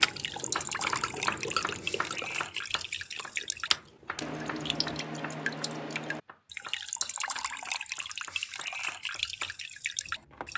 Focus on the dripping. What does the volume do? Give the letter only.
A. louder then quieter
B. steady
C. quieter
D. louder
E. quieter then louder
B.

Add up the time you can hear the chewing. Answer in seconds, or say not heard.
5 s.